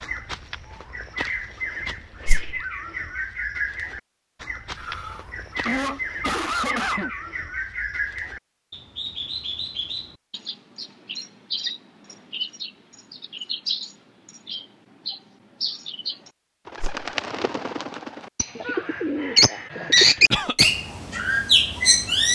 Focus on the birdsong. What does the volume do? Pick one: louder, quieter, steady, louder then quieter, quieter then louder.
louder.